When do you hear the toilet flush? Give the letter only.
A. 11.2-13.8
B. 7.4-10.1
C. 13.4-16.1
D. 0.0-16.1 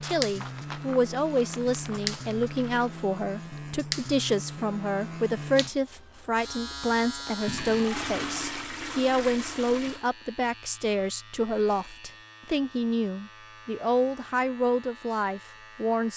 B.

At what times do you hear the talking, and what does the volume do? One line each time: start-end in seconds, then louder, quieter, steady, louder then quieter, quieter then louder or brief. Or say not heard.
0.0-16.1 steady.